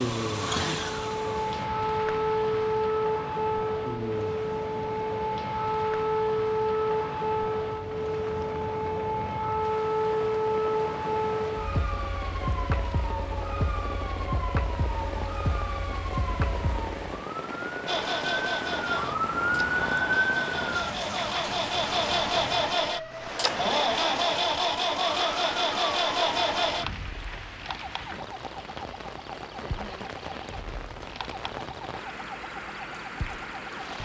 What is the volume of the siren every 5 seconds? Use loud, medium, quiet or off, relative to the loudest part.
loud, loud, loud, loud, loud, quiet, quiet.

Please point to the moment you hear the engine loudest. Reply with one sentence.
The volume of the engine peaks at 24 seconds.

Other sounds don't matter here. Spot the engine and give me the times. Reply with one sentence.
You can hear the engine from 0.0 to 1.7 s and from 17.9 to 27.1 s.